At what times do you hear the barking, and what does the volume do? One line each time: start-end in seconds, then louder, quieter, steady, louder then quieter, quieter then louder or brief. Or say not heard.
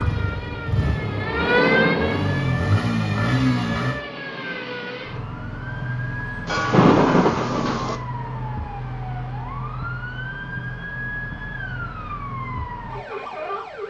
not heard.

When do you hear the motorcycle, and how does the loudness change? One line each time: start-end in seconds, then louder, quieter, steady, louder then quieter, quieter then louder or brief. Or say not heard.
0.0-4.0 quieter then louder.